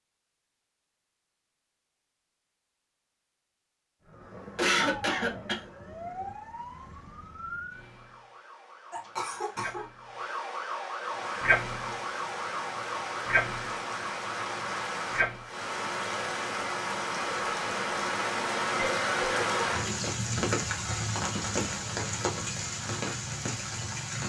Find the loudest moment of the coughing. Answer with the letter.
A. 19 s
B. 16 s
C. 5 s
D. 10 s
C.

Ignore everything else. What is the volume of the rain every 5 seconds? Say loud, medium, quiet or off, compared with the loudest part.
off, off, medium, loud, loud.